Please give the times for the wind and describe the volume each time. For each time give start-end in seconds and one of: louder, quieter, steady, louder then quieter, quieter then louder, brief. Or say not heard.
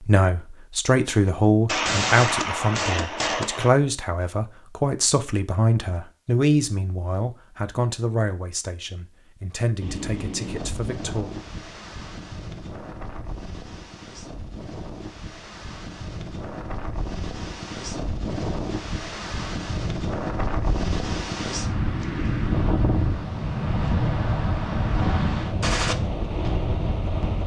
9.8-27.4 louder.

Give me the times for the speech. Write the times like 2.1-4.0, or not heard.
0.0-11.3.